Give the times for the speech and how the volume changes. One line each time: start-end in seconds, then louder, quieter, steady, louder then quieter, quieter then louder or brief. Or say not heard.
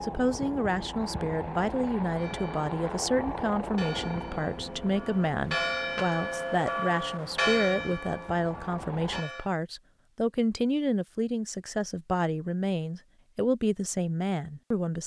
0.0-15.0 steady.